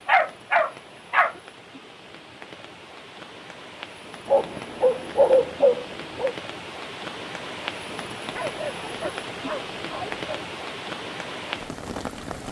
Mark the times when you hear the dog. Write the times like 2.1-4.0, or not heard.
0.1-1.4, 4.2-6.3, 8.3-10.2.